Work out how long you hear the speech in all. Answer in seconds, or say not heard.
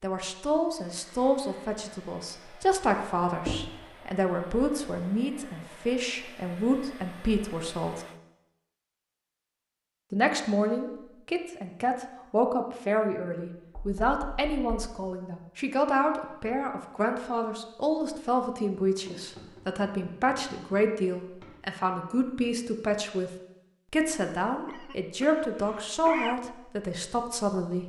25 s.